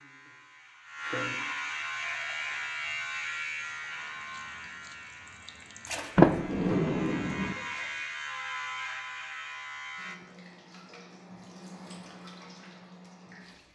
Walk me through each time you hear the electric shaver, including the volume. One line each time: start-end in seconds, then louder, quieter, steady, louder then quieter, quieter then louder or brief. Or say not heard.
0.0-10.2 quieter then louder.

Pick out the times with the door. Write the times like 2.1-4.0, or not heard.
6.2-7.5.